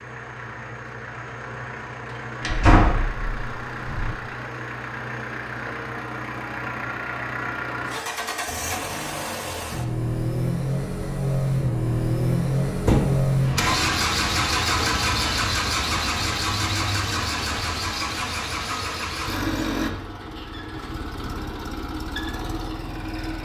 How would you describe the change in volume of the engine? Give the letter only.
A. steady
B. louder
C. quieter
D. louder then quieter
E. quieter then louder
D.